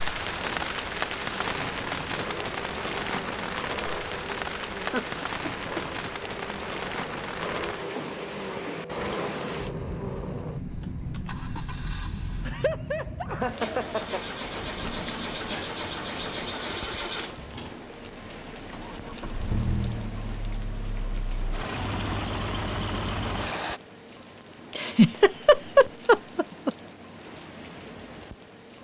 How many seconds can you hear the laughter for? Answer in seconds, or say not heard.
4 s.